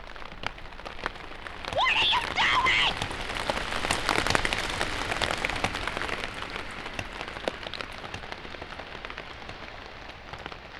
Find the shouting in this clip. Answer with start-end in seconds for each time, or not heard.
1.8-3.0.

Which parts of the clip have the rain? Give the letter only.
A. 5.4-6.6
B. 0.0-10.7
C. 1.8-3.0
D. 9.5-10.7
B.